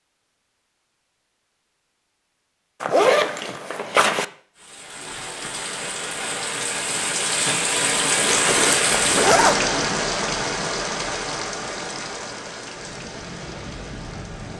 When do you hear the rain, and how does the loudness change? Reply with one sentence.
The rain can be heard from 4.5 to 14.5 s, getting louder then quieter.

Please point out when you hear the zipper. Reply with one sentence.
The zipper can be heard from 2.8 to 4.2 s and from 8.2 to 9.6 s.